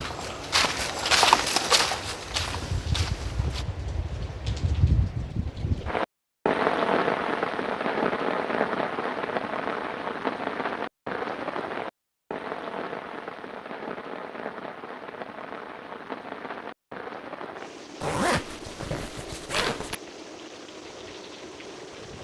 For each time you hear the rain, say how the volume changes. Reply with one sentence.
You can hear the rain from 0.0 to 22.1 s, getting louder then quieter.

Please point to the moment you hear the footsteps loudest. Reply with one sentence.
The volume of the footsteps peaks at 1 second.